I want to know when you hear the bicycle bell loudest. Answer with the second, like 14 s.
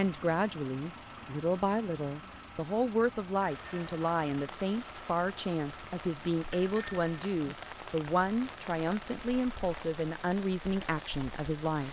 7 s.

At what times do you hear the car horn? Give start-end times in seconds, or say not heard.
not heard.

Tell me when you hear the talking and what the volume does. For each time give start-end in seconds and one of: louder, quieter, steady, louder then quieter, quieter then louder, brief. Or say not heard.
0.0-11.8 steady.